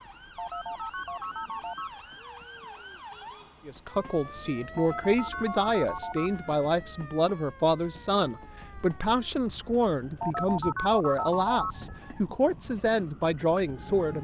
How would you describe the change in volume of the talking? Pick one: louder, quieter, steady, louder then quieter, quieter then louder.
steady.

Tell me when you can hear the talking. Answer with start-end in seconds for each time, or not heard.
3.6-14.1.